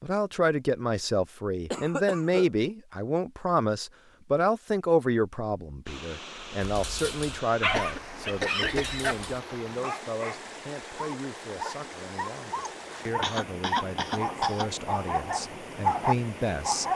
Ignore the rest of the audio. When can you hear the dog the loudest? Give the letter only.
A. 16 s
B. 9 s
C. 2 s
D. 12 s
A.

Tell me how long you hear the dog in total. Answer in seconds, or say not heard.
10 s.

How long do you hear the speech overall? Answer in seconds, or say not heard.
17 s.